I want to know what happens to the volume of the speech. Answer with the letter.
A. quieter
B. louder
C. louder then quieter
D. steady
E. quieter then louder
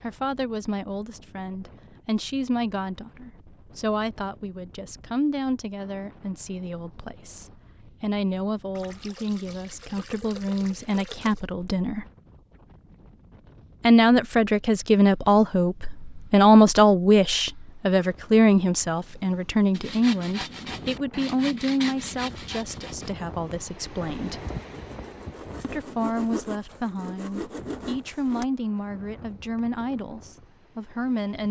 C.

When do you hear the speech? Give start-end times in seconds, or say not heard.
0.0-12.1, 13.8-24.4, 25.6-31.4.